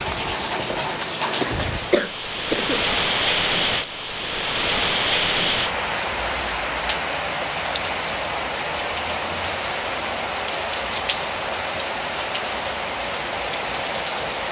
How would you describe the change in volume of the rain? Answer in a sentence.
The loudness of the rain stays about the same.